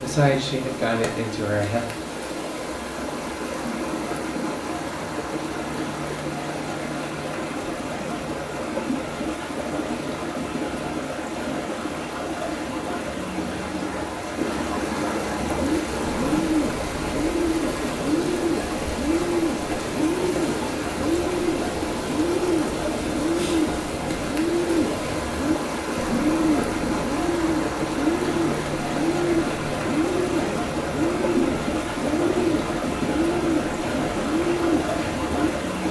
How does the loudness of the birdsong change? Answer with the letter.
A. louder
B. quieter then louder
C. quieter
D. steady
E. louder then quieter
D.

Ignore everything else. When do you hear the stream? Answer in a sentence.
You can hear the stream from 0.0 to 35.8 s.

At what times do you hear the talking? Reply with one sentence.
You can hear the talking from 0.0 to 1.8 s.